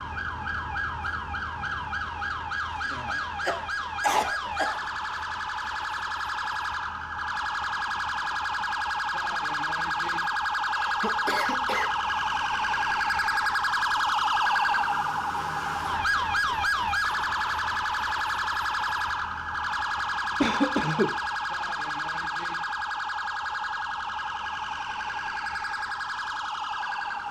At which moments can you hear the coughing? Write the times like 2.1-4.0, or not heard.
3.0-4.8, 9.9-11.9, 20.4-21.1.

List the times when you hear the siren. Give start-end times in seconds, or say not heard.
0.0-27.2.